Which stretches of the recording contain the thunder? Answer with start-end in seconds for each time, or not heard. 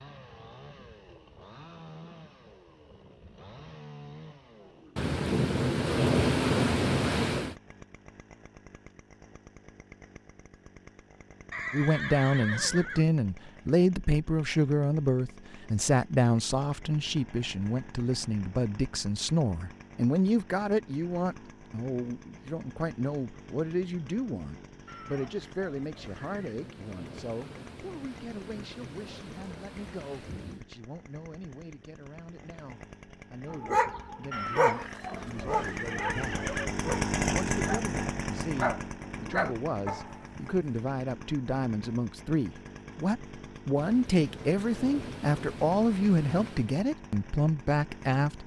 5.0-7.5, 25.9-30.6, 43.8-46.8.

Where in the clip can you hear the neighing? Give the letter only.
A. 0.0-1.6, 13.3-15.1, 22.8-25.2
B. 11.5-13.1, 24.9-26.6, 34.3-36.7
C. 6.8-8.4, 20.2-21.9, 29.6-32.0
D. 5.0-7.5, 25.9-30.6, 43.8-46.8
B.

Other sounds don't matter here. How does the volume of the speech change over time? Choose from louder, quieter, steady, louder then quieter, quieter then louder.
quieter then louder.